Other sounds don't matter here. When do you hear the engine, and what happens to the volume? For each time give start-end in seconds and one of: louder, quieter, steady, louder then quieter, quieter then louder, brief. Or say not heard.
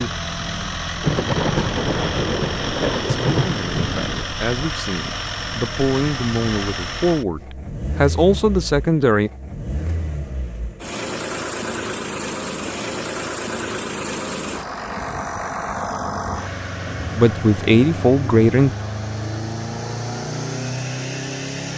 0.0-21.7 steady.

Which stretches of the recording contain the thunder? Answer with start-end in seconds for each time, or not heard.
1.0-4.2.